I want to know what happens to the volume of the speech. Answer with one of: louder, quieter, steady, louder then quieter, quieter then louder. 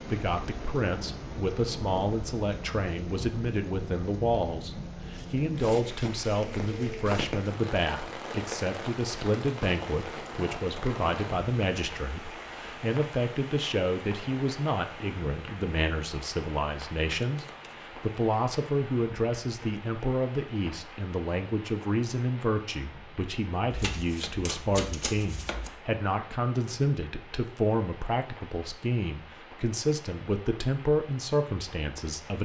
steady.